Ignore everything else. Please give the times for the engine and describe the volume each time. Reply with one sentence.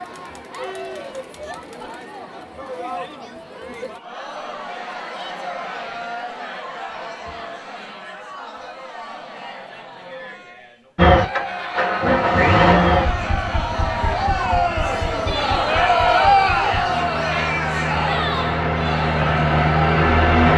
You can hear the engine from 10.9 to 20.5 s, getting quieter then louder.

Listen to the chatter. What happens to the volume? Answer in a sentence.
The loudness of the chatter goes up.